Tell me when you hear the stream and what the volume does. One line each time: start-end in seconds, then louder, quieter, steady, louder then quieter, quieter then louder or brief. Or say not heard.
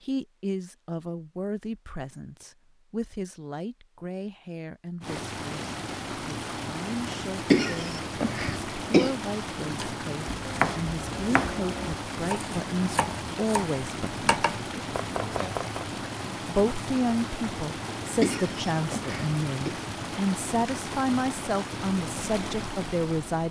5.0-23.4 steady.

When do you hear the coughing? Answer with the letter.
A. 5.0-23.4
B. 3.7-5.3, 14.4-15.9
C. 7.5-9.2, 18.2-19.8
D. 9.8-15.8
C.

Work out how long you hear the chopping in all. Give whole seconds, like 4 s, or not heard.
6 s.